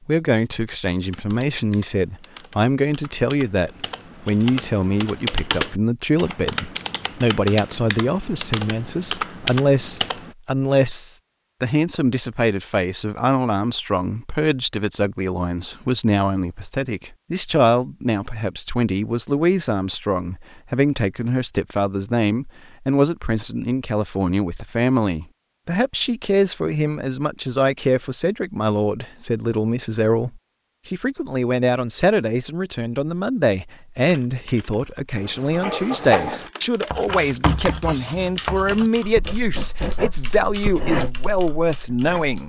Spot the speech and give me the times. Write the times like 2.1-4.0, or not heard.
0.1-42.4.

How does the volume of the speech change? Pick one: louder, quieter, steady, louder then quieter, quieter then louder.
steady.